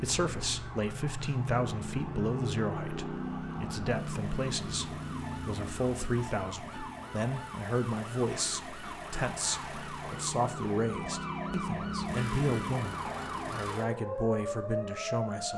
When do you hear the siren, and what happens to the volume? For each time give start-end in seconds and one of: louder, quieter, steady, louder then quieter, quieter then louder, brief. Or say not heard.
0.0-15.5 louder.